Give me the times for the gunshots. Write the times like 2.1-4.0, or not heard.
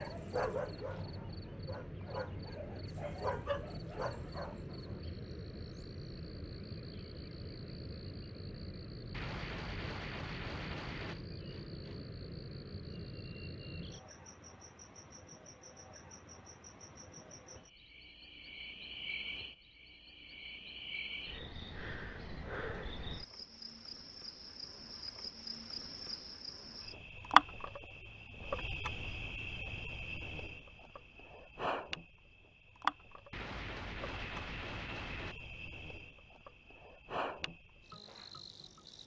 9.1-11.2, 33.3-35.4.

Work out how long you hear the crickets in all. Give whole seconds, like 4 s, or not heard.
39 s.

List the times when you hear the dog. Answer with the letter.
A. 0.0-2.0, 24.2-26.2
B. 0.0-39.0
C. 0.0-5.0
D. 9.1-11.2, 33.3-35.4
C.